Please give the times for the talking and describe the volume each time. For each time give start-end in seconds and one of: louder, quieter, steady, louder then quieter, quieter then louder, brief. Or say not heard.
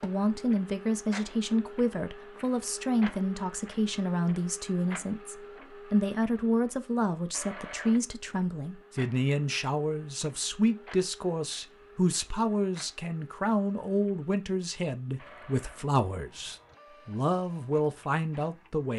0.0-18.9 steady.